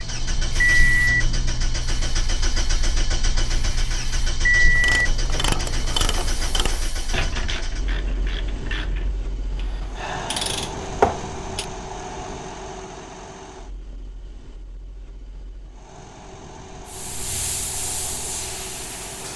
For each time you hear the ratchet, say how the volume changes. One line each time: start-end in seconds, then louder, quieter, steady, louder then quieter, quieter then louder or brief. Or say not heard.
4.5-11.7 quieter then louder.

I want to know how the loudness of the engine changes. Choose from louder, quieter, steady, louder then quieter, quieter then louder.
quieter.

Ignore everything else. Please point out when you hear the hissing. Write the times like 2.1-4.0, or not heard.
0.0-7.2, 16.9-19.3.